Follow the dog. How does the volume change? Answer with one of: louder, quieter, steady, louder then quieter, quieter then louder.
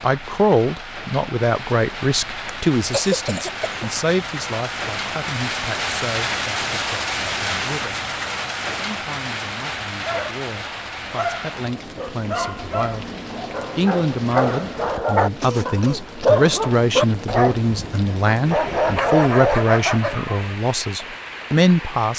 louder.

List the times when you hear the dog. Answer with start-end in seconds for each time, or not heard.
10.0-20.6.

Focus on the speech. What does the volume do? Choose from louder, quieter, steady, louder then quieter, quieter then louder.
quieter then louder.